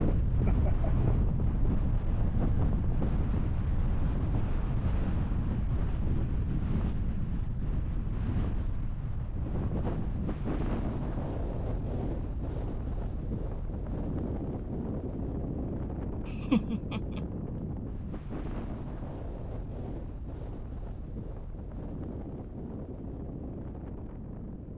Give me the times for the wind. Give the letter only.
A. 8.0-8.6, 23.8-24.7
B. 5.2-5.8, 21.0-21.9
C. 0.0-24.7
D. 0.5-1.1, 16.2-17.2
C.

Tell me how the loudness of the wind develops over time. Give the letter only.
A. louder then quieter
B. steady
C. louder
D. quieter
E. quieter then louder
D.